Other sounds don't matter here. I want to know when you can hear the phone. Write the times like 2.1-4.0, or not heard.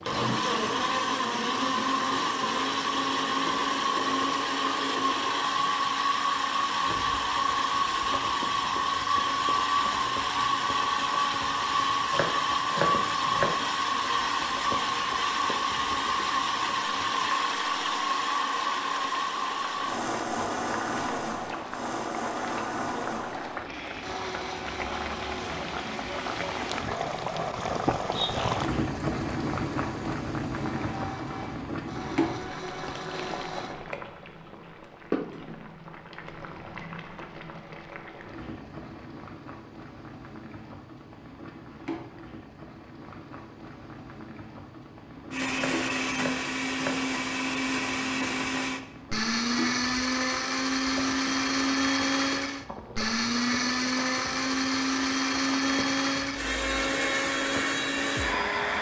24.8-25.4.